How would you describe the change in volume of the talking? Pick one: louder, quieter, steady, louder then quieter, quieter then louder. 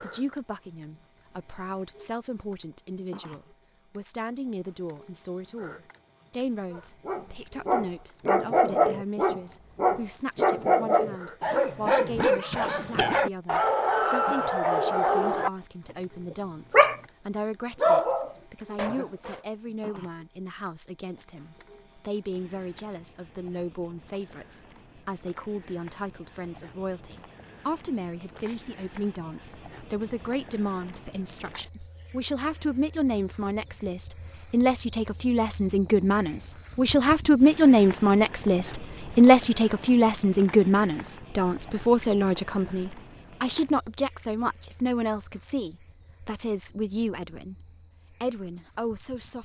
louder.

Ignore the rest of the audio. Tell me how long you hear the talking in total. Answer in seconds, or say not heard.
49 s.